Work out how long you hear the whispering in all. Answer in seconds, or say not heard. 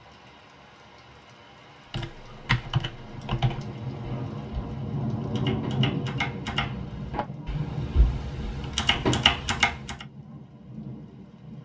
not heard.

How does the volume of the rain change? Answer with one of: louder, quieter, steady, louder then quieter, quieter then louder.
louder then quieter.